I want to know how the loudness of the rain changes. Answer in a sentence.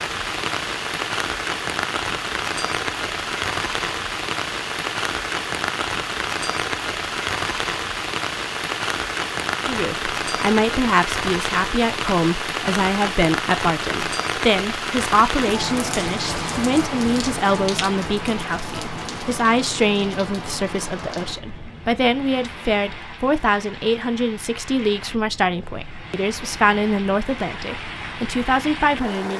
The volume of the rain goes down.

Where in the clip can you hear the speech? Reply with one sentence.
You can hear the speech from 9.7 to 29.3 s.